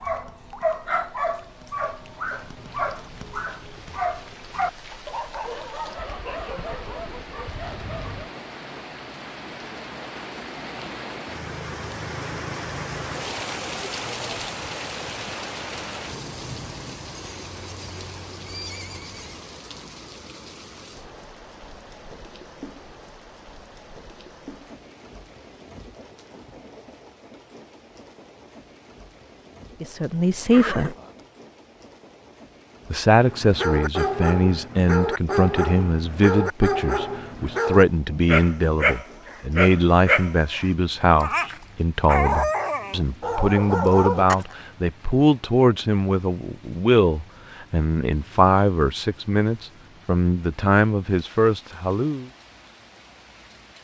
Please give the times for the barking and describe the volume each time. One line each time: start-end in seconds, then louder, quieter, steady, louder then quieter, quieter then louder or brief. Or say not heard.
0.0-8.3 quieter
33.2-44.5 steady.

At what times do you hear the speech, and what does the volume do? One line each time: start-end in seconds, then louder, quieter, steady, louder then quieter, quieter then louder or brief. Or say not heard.
29.8-30.9 brief
32.9-52.2 steady.